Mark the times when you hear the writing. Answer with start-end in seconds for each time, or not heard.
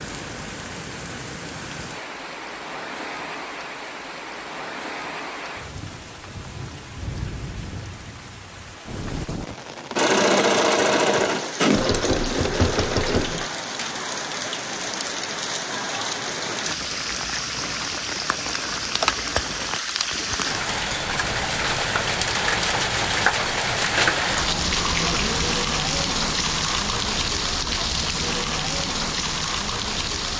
not heard.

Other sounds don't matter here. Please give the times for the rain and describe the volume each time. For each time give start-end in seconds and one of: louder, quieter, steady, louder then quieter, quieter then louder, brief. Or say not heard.
0.0-30.3 louder.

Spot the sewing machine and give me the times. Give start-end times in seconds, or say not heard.
9.9-13.5.